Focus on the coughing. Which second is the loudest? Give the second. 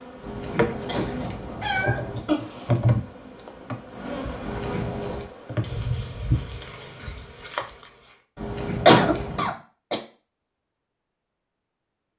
9 s.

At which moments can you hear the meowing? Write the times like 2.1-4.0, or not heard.
0.2-2.2, 4.4-5.3, 8.3-9.5.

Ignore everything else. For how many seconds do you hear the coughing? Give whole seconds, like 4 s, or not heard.
3 s.